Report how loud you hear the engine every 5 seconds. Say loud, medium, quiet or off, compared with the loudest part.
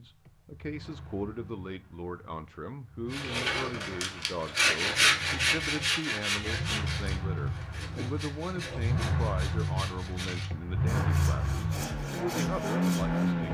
quiet, medium, loud.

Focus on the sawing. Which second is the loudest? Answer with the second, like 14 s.
5 s.